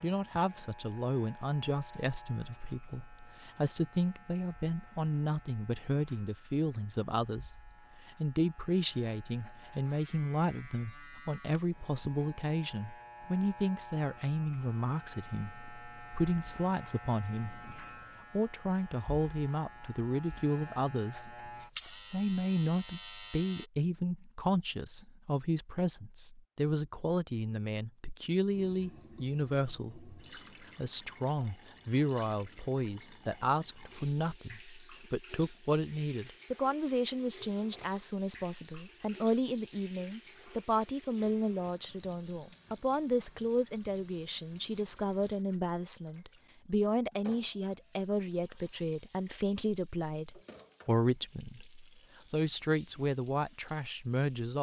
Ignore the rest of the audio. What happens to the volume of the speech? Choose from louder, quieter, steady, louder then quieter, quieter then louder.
steady.